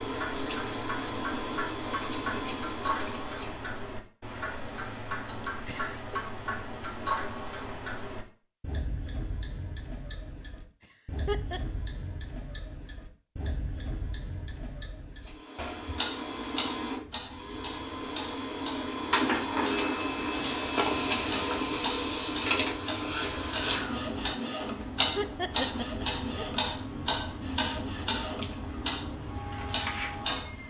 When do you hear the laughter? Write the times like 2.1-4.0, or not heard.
5.4-6.2, 10.8-11.6, 24.9-26.6.